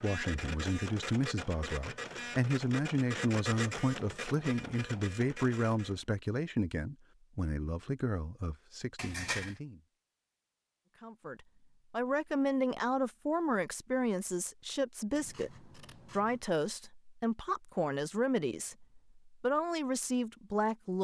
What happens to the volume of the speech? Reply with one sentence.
The volume of the speech stays about the same.